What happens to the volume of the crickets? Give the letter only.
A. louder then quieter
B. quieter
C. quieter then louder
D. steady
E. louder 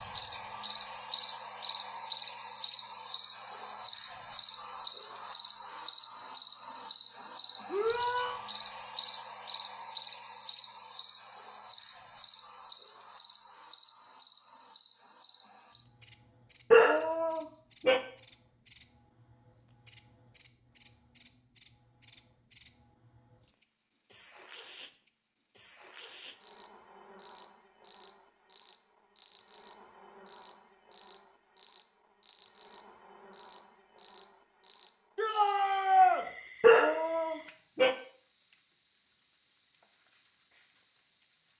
B.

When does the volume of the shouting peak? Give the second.
36 s.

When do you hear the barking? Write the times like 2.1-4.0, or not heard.
16.7-18.0, 36.6-38.0.